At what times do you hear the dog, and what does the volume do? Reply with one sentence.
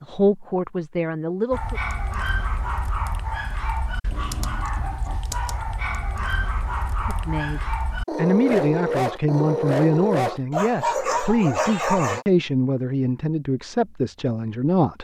The dog can be heard from 1.5 to 12.2 s, getting louder.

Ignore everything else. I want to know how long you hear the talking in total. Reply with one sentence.
The talking can be heard for 10 seconds in total.